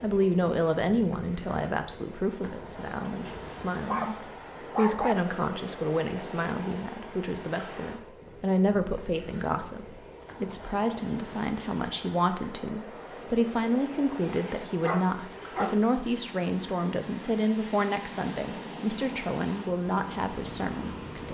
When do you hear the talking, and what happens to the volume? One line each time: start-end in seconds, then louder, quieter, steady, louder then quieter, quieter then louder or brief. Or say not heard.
0.0-21.2 steady.